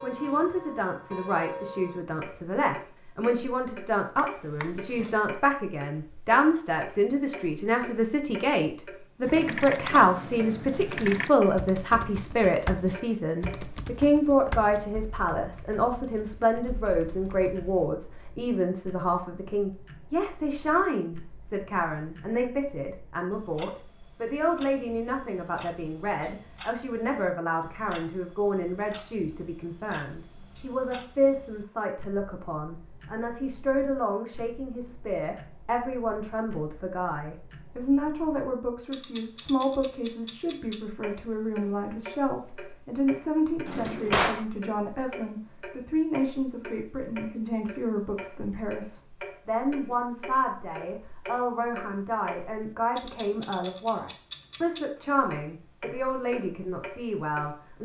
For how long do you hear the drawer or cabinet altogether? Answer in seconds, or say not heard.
2 s.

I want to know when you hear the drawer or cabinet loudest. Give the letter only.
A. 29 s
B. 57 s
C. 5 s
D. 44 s
D.